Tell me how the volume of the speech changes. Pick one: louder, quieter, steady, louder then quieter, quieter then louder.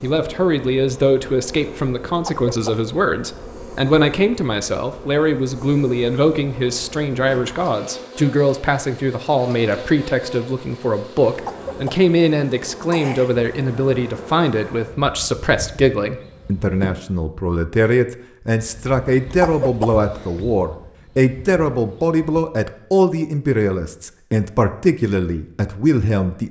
steady.